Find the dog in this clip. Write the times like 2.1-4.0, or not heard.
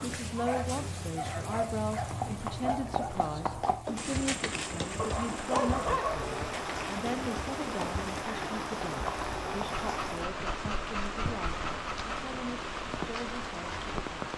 0.3-3.1, 5.0-6.4, 9.8-12.2.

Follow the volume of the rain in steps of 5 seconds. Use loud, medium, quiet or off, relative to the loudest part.
medium, loud, loud.